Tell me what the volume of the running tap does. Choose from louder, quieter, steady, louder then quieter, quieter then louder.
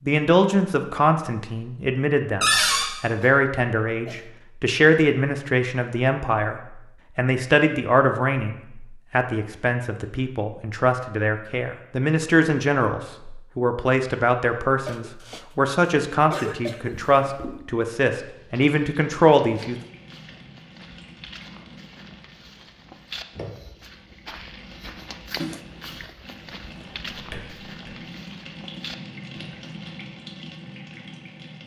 louder.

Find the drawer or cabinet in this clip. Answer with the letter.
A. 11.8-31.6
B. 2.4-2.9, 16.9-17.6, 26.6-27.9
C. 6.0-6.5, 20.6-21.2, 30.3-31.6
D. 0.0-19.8
B.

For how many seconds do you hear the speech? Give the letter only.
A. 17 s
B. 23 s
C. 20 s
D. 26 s
C.